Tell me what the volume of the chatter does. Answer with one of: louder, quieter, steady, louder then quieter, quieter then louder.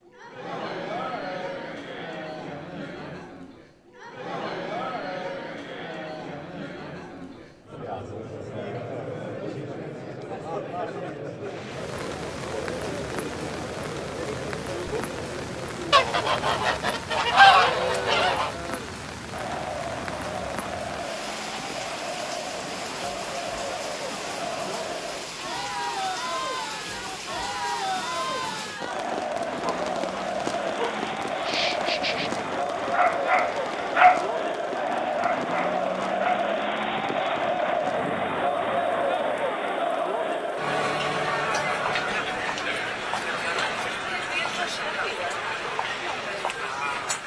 louder.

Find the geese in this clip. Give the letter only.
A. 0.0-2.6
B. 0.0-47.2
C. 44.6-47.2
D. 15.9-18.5
D.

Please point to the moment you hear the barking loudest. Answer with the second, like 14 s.
34 s.